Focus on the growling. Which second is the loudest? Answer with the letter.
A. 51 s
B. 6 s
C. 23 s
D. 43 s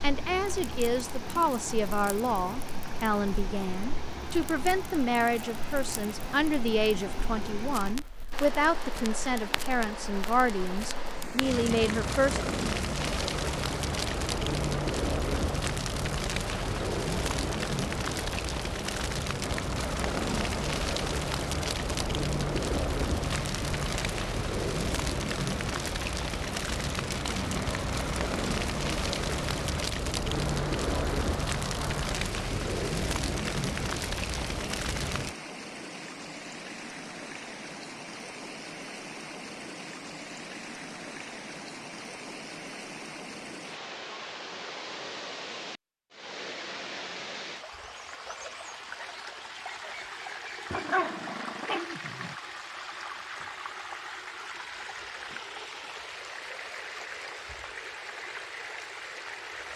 A.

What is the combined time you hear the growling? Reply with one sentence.
The growling can be heard for 2 seconds in total.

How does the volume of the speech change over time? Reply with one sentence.
The volume of the speech stays about the same.